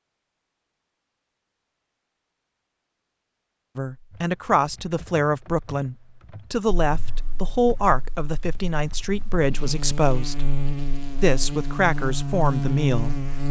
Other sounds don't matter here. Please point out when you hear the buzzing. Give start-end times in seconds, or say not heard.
6.8-13.4.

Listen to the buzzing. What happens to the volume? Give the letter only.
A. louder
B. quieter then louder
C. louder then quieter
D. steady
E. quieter
A.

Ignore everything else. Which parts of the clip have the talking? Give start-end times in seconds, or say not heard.
3.8-10.4, 11.2-13.4.